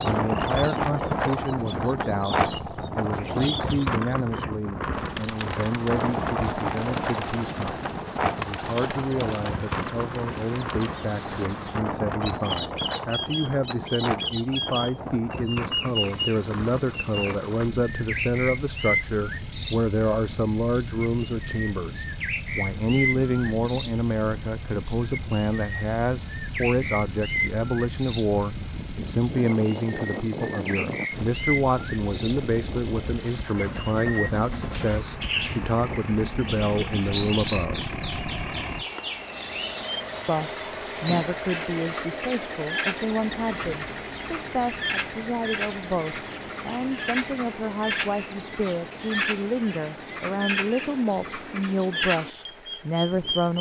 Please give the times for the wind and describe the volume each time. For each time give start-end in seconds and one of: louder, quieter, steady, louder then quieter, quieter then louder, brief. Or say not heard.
0.0-38.9 quieter.